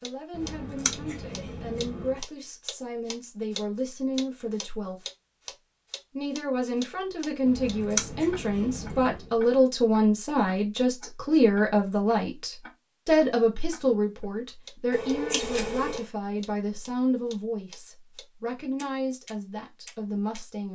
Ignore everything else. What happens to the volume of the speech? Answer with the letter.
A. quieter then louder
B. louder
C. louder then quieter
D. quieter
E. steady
C.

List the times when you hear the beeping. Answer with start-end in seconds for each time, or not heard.
not heard.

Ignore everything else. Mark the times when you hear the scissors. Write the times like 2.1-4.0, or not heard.
0.3-2.1, 7.5-9.3, 14.9-16.1.